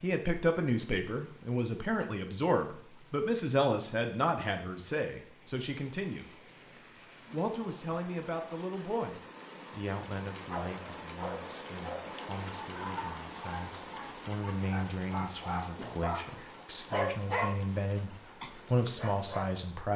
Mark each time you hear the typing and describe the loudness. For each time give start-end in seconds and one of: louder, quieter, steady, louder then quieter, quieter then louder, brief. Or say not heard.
not heard.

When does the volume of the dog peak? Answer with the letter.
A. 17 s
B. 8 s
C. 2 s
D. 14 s
A.